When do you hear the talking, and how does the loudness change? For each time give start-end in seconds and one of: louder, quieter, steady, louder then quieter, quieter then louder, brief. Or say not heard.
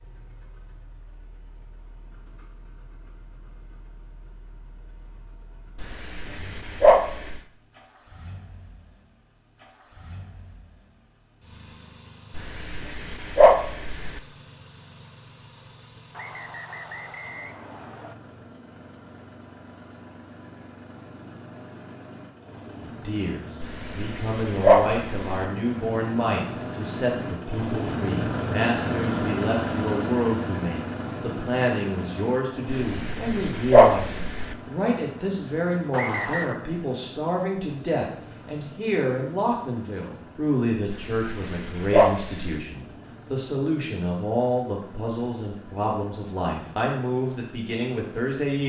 22.9-48.6 steady.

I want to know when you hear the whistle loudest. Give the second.
36 s.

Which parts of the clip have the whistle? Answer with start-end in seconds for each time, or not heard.
16.1-18.1, 35.9-36.5.